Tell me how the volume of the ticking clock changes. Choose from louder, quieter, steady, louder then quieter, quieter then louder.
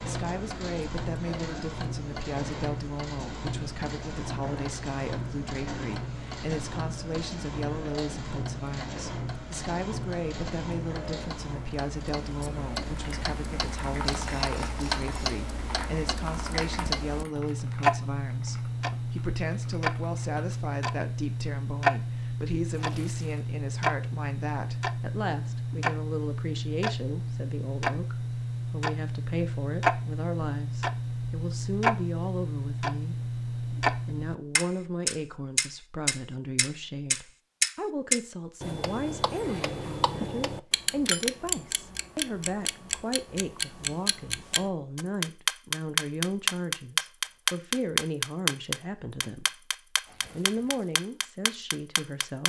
louder.